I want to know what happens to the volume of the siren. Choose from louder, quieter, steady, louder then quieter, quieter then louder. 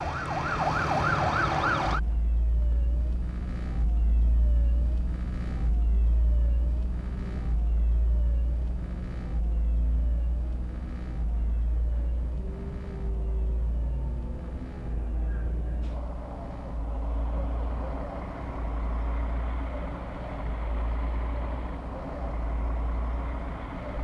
quieter.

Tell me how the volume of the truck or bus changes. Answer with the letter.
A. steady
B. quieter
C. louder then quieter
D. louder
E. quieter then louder
D.